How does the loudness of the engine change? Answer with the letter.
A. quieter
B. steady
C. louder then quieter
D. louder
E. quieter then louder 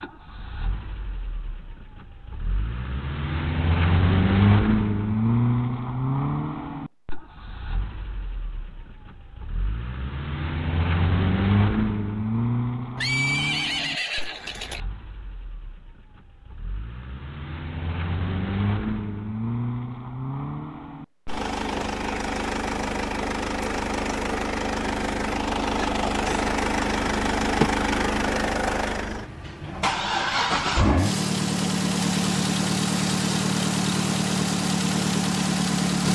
E.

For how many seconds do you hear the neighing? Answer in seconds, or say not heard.
2 s.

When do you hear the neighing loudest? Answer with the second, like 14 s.
13 s.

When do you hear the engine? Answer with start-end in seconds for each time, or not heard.
0.0-36.0.